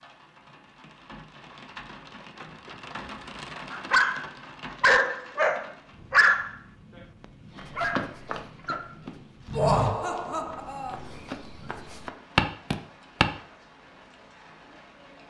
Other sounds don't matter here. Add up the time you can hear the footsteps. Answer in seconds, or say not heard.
6 s.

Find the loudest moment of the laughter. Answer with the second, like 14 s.
10 s.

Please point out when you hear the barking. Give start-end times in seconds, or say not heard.
3.7-9.0.